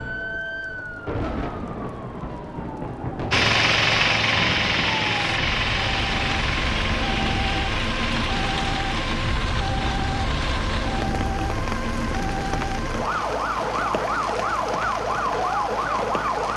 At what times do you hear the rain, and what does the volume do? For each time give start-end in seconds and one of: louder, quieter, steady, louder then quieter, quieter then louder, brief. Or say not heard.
0.0-16.5 steady.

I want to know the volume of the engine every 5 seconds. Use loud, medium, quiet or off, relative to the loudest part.
loud, medium, off, off.